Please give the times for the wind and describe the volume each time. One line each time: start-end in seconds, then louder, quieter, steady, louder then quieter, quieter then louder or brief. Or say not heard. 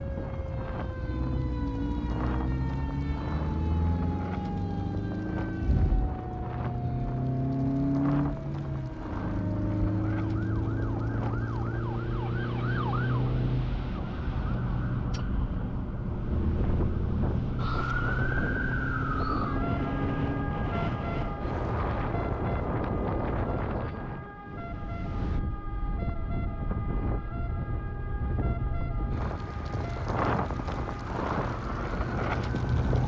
0.0-33.0 louder.